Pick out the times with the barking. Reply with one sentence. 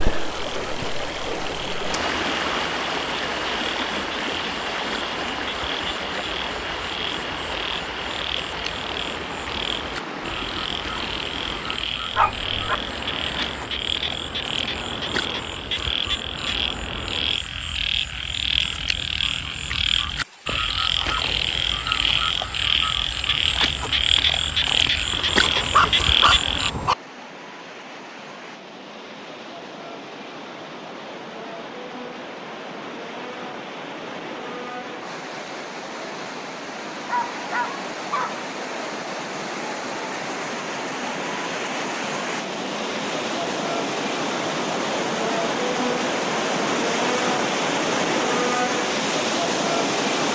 The barking can be heard from 12.2 to 12.8 s, from 25.4 to 26.9 s and from 36.9 to 38.5 s.